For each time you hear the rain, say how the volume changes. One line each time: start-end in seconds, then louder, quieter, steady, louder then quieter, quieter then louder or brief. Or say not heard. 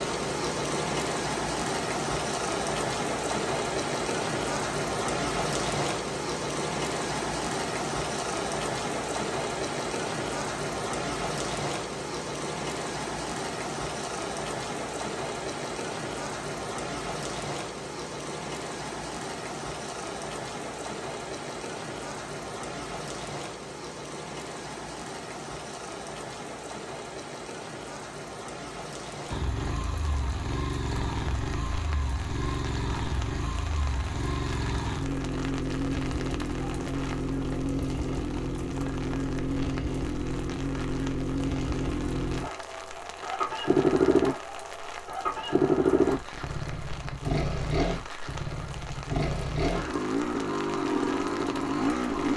0.0-52.3 quieter.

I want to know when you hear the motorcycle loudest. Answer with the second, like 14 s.
44 s.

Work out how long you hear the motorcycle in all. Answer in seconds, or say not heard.
23 s.